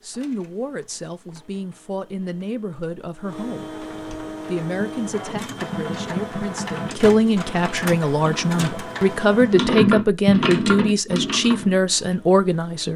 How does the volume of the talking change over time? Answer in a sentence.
The volume of the talking goes up.